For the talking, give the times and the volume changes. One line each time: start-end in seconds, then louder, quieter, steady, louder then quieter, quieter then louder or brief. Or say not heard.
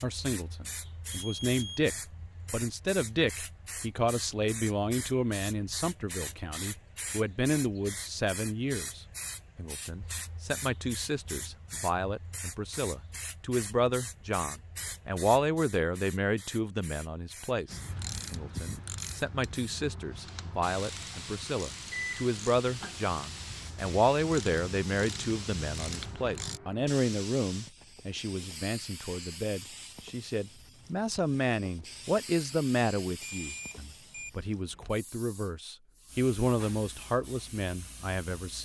0.0-38.6 steady.